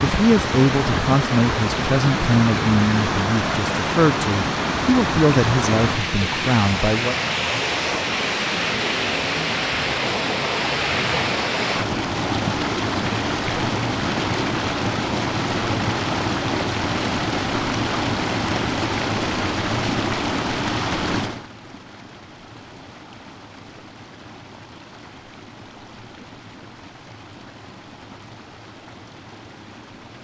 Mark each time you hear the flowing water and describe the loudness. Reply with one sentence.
The flowing water can be heard from 0.0 to 30.2 s, getting quieter.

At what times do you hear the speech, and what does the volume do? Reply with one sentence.
You can hear the speech from 0.0 to 7.2 s, at a steady volume.